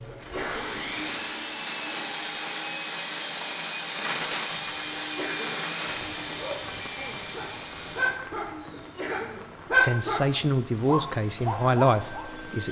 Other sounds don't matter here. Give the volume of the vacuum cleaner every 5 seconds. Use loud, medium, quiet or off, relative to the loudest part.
loud, loud, medium.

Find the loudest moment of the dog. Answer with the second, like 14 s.
10 s.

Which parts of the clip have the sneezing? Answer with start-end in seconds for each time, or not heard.
0.1-0.9, 5.0-5.7, 8.7-9.4.